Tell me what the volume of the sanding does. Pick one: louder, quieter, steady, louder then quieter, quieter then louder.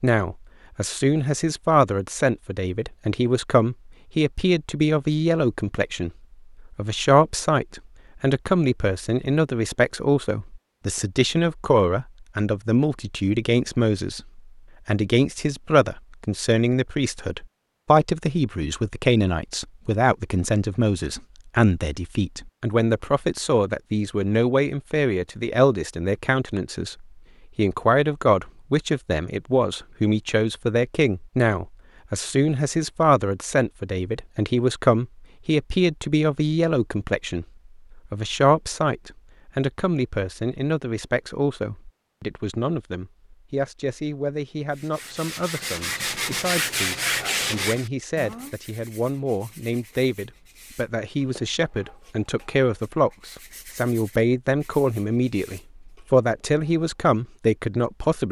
quieter.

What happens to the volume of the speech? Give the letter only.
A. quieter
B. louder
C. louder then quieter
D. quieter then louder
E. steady
E.